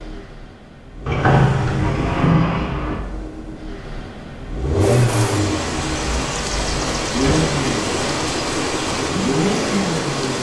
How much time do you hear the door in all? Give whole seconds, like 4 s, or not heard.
4 s.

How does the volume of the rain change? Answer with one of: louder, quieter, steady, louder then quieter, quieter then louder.
steady.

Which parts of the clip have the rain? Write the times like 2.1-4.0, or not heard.
4.8-10.3.